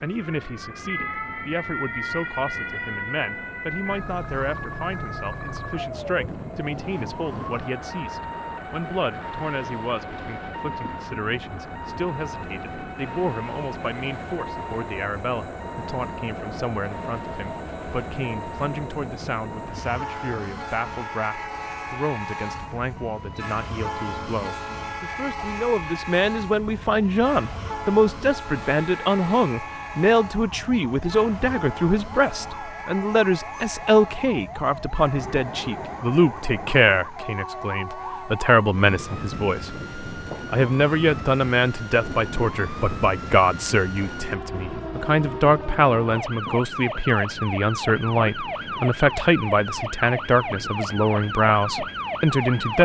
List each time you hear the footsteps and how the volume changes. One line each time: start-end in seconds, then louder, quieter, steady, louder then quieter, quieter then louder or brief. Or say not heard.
not heard.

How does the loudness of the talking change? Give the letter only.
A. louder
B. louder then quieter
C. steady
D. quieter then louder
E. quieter
A.